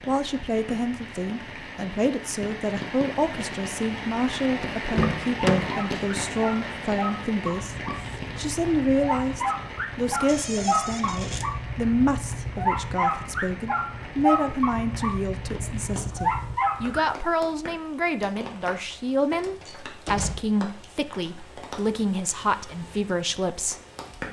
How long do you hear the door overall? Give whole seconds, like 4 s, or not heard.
3 s.